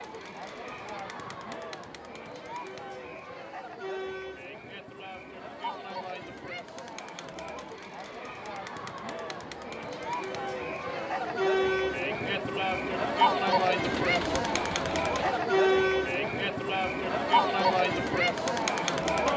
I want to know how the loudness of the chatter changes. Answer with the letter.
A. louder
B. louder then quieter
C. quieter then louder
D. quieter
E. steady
A.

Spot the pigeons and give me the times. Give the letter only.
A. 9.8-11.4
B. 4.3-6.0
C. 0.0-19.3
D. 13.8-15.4
D.